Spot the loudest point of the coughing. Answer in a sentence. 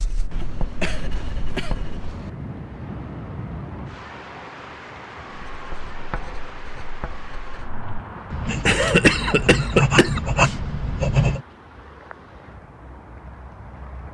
The volume of the coughing peaks at 9 seconds.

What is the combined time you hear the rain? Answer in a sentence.
You can hear the rain for 14 seconds altogether.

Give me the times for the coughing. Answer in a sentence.
You can hear the coughing from 0.3 to 2.3 s and from 8.7 to 10.2 s.